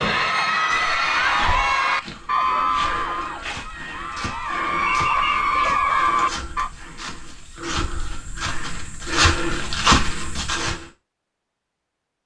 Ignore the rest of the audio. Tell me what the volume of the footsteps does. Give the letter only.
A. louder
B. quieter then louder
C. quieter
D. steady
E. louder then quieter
A.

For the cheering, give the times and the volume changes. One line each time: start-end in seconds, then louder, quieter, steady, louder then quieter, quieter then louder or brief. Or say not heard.
0.0-6.7 quieter then louder.